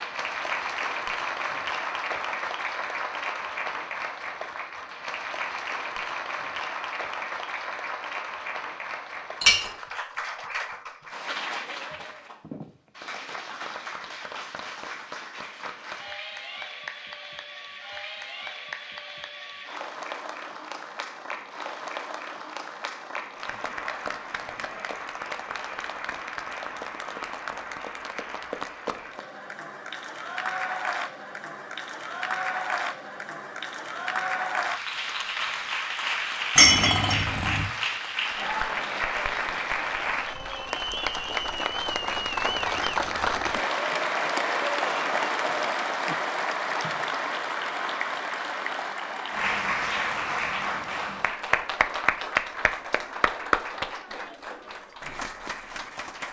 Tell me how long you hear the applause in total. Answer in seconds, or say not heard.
56 s.